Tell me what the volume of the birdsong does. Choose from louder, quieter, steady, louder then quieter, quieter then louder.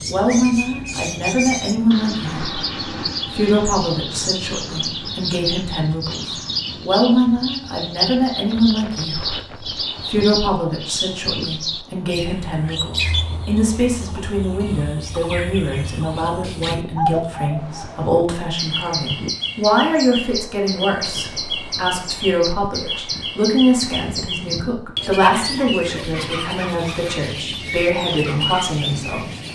steady.